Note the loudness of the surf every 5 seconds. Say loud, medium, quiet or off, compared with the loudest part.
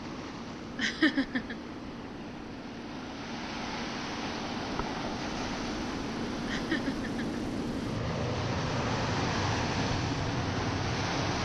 medium, loud, loud.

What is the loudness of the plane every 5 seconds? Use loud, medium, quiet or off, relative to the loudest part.
medium, loud, loud.